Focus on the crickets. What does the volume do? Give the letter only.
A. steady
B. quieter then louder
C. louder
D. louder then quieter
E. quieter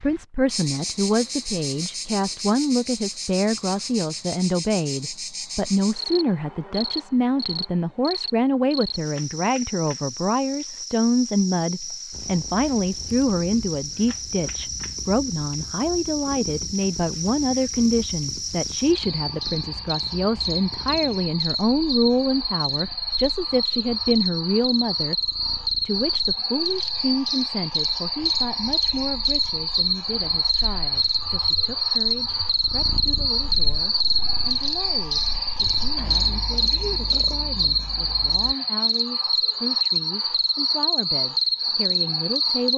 C.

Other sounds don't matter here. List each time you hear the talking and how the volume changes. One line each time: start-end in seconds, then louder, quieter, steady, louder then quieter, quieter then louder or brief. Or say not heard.
0.0-42.7 quieter.